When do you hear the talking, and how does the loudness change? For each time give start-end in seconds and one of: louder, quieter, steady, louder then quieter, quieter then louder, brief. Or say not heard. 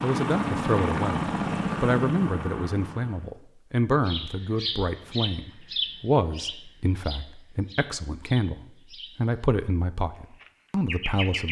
0.0-11.4 steady.